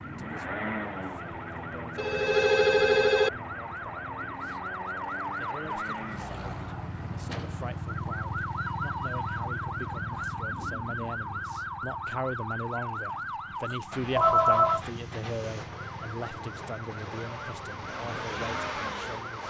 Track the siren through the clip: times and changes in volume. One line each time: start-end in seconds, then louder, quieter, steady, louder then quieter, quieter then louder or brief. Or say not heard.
0.0-19.4 louder then quieter.